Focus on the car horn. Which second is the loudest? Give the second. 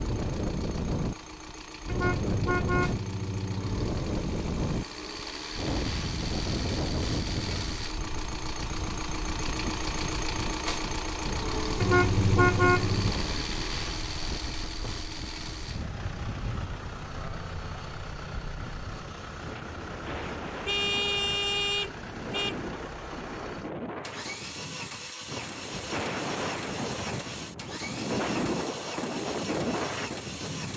13 s.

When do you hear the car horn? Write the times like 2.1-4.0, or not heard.
1.9-3.9, 11.8-13.2, 20.6-22.6.